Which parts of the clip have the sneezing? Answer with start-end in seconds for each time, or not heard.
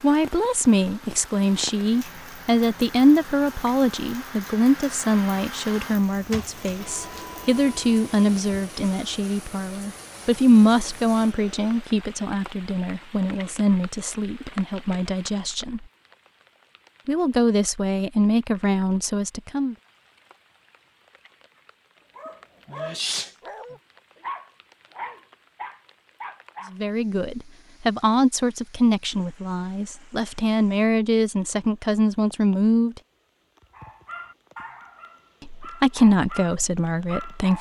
22.6-23.3.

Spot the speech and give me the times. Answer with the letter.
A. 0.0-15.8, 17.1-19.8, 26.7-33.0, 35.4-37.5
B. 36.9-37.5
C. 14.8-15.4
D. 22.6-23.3
A.